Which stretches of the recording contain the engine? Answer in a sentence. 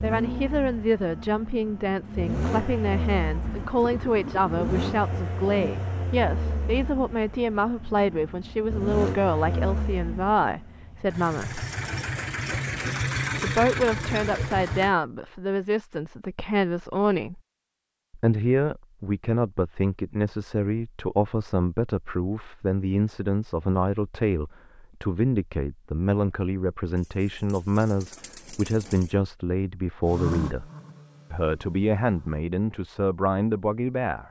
You can hear the engine from 0.0 to 14.9 s and from 30.0 to 32.5 s.